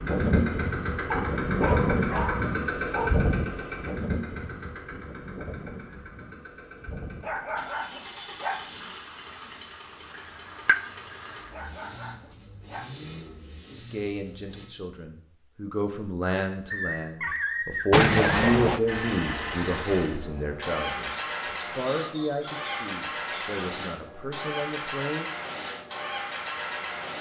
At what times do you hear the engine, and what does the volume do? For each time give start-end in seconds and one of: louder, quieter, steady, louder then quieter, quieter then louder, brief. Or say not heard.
0.0-14.7 quieter
18.9-27.1 steady.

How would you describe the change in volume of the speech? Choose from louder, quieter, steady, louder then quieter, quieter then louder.
louder then quieter.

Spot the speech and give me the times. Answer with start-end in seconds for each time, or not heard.
13.7-25.3.